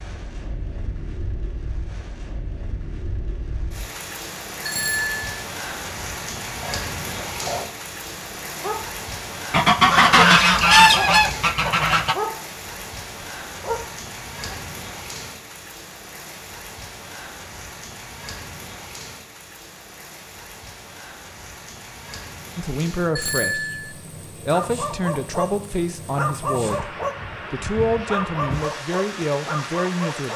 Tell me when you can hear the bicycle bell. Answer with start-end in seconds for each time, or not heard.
4.7-5.2, 23.1-23.9.